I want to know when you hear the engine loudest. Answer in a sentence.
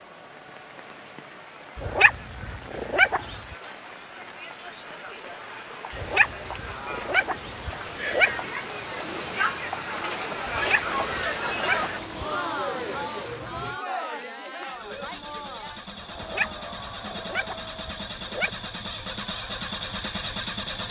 The loudest moment of the engine is at 20 seconds.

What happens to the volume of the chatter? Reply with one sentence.
The loudness of the chatter goes up, then down.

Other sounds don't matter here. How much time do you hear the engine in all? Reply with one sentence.
You can hear the engine for 6 seconds altogether.